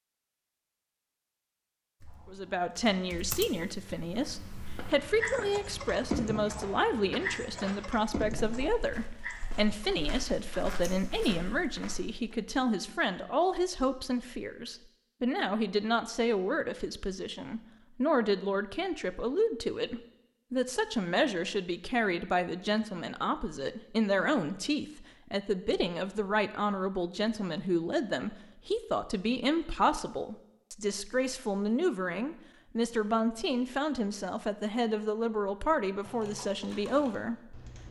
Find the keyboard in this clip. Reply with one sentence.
You can hear the keyboard from 2.0 to 10.1 s and from 36.0 to 37.8 s.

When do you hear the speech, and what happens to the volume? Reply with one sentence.
You can hear the speech from 2.2 to 37.5 s, at a steady volume.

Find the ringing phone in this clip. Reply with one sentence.
You can't hear the ringing phone here.